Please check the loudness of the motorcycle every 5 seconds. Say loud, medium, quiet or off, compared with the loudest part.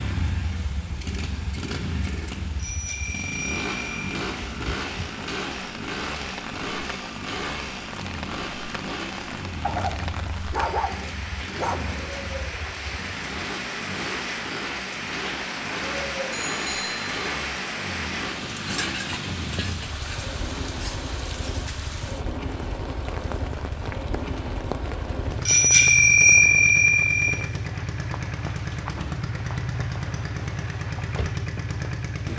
loud, loud, medium, loud, loud, loud, loud.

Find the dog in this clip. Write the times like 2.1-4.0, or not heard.
9.6-12.1.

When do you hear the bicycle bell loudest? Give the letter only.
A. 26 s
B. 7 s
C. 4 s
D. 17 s
A.